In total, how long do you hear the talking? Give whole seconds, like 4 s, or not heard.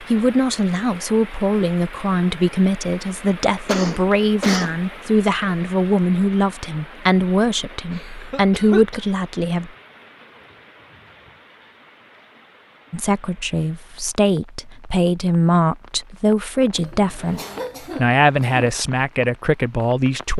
17 s.